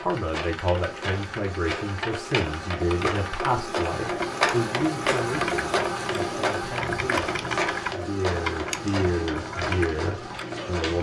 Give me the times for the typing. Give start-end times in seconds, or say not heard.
0.0-10.9.